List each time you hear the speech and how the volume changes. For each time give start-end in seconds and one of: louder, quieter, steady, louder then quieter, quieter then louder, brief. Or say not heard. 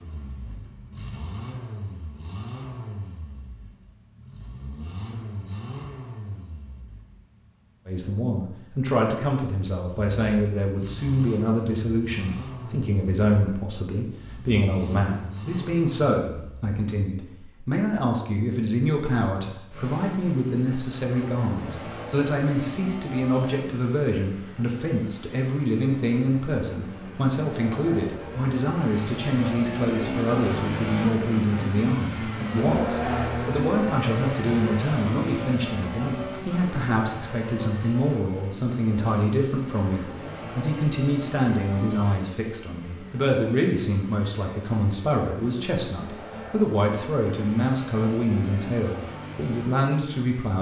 7.8-50.5 steady.